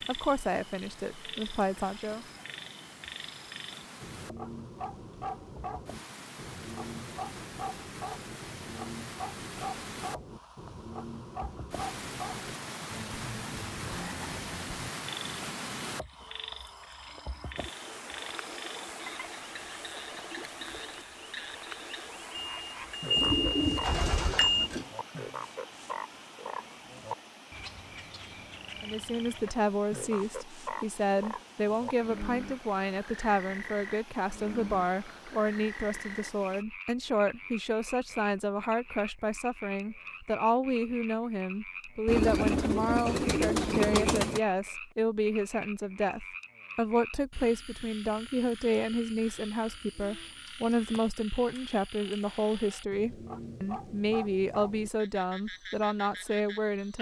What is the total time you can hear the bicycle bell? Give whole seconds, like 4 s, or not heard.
2 s.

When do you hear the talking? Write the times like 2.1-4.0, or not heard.
0.1-2.2, 28.8-56.9.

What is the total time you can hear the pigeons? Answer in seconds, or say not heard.
4 s.